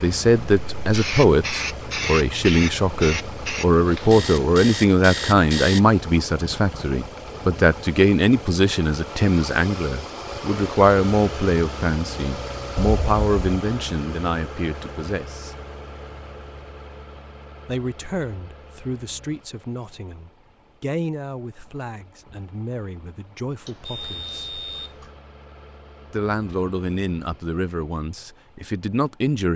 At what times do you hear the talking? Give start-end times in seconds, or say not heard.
0.0-15.5, 17.6-24.5, 26.1-29.5.